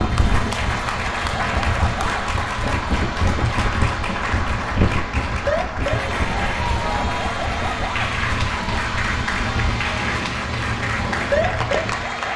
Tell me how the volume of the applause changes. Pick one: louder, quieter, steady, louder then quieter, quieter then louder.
steady.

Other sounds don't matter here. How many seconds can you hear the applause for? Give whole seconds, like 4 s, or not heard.
12 s.